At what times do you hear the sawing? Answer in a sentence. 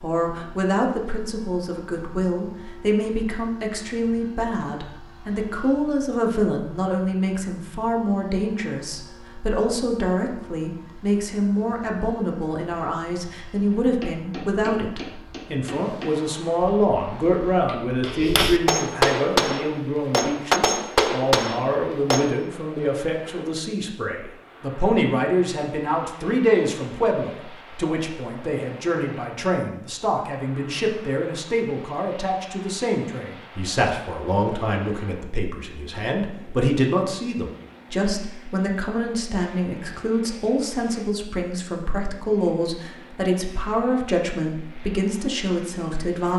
You can't hear the sawing here.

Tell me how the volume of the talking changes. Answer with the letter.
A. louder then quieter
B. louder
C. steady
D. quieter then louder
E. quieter
C.